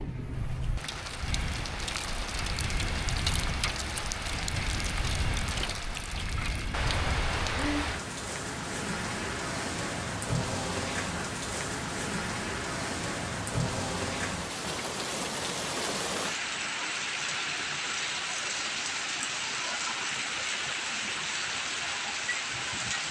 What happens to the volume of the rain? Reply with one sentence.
The volume of the rain stays about the same.